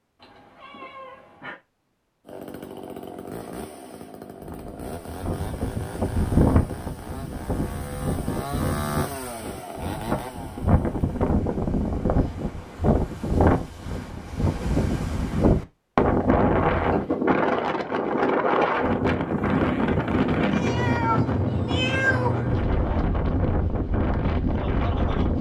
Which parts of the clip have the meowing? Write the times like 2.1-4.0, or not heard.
0.2-1.6, 20.5-22.6.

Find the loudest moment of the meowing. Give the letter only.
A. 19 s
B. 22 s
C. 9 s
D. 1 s
B.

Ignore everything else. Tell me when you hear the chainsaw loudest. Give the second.
9 s.